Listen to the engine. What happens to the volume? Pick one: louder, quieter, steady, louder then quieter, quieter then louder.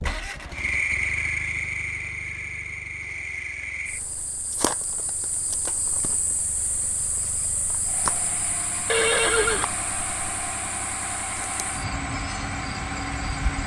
quieter then louder.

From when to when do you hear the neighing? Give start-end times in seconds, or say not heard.
8.8-9.7.